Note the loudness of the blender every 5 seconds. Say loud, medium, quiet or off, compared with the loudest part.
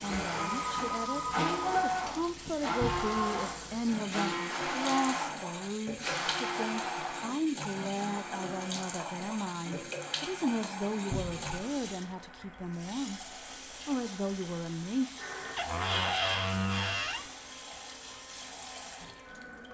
loud, medium, quiet, quiet.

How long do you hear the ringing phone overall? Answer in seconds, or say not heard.
2 s.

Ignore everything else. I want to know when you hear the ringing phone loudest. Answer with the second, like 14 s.
1 s.